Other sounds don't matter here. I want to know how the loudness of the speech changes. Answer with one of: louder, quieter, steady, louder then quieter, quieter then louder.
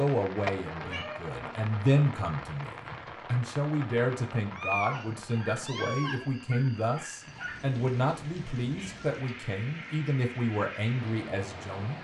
steady.